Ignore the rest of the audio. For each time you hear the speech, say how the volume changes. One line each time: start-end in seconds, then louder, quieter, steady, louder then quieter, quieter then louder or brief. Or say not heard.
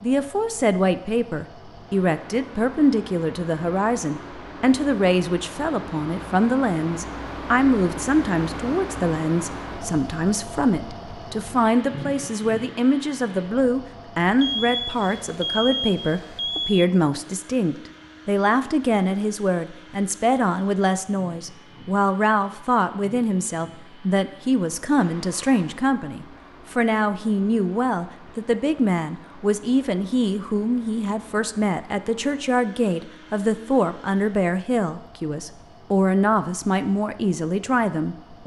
0.0-38.4 steady.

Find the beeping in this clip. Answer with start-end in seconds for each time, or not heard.
14.3-16.9, 24.9-25.8.